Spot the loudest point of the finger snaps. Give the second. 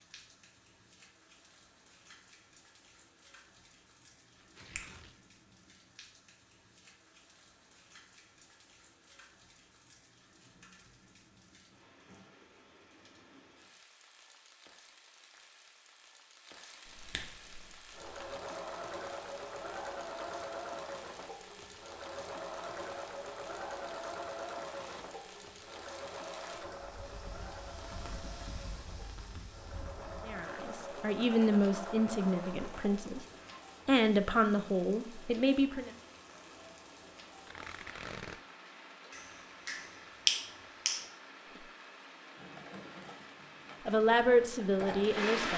40 s.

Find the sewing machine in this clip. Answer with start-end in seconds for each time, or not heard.
17.4-33.6, 42.4-45.2.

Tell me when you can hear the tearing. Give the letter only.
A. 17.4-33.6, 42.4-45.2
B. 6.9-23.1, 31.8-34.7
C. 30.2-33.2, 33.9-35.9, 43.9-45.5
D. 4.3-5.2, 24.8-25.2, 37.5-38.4
D.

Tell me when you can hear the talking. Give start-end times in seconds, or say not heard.
30.2-33.2, 33.9-35.9, 43.9-45.5.